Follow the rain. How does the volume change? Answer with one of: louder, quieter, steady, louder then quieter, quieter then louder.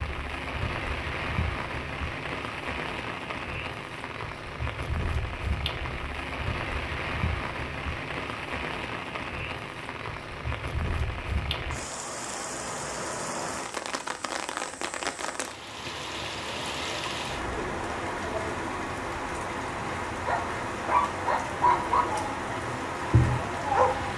steady.